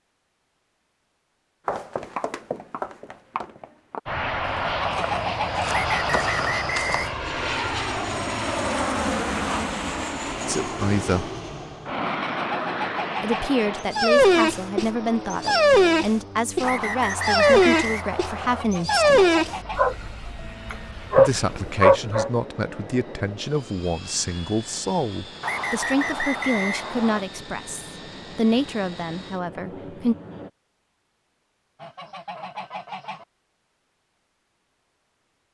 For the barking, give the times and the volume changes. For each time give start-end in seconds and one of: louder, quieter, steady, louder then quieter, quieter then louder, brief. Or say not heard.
13.9-22.3 steady.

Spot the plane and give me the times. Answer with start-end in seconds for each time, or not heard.
4.0-30.5.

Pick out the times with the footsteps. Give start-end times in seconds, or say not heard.
1.6-7.2.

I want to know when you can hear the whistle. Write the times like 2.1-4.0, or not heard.
5.7-7.2, 16.6-18.6, 25.4-27.2.